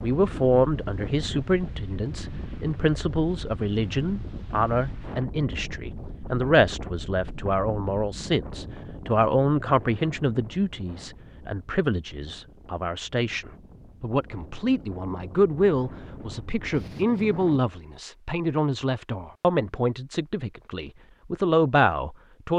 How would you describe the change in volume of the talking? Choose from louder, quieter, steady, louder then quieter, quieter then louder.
steady.